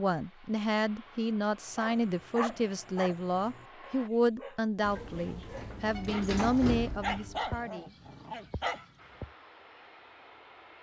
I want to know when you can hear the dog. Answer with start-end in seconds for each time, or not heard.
1.8-9.3.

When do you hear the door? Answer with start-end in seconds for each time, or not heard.
4.8-7.4.